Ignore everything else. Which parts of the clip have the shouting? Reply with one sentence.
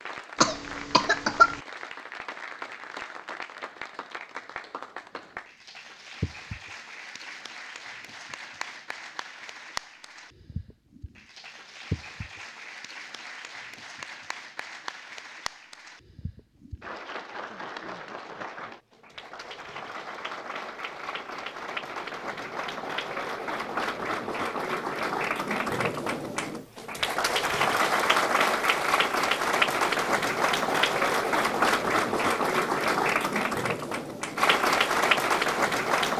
The shouting can't be heard in this clip.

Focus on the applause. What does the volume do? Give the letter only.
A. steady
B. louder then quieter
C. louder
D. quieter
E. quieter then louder
C.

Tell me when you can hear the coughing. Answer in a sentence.
The coughing can be heard from 0.4 to 1.6 s.